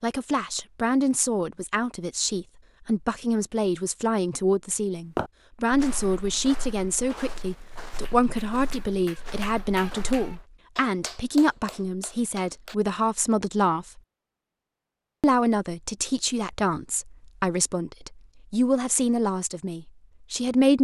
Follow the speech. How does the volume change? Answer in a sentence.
The volume of the speech stays about the same.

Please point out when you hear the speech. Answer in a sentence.
The speech can be heard from 0.0 to 14.0 s and from 15.2 to 20.7 s.